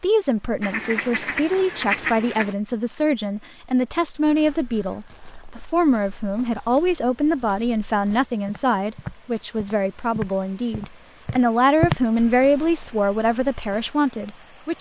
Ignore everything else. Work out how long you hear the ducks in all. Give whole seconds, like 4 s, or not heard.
2 s.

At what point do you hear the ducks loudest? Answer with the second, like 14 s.
2 s.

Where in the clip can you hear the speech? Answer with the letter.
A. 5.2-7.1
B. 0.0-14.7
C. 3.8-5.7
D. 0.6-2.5
B.